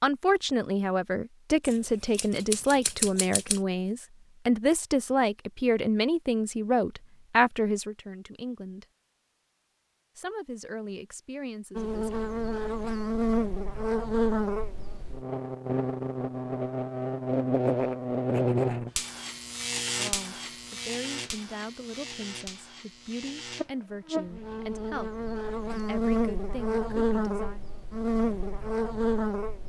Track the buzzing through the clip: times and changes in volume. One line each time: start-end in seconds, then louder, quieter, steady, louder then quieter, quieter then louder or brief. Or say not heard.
11.8-29.6 quieter then louder.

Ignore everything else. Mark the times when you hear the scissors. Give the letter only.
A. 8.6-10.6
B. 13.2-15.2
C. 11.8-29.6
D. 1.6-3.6
D.